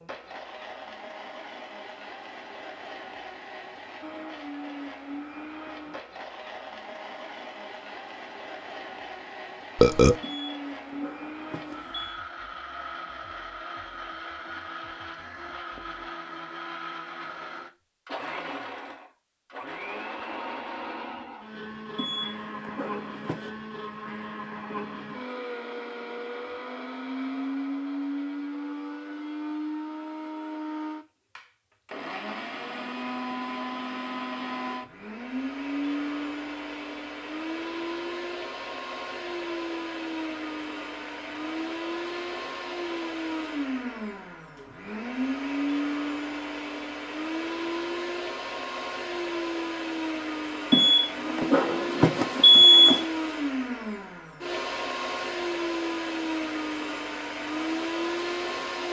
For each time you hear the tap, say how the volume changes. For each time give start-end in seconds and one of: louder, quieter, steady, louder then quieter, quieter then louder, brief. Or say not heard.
not heard.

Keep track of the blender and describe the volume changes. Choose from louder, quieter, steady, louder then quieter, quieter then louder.
louder.